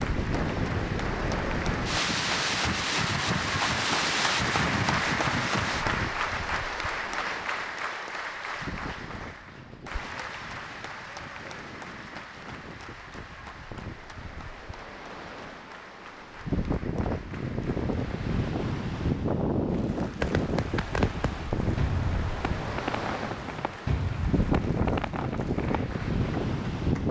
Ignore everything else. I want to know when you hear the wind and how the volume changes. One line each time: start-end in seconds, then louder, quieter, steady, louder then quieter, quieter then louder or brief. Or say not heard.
0.0-27.0 quieter then louder.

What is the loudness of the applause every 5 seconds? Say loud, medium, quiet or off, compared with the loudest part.
loud, loud, medium, quiet, quiet, quiet.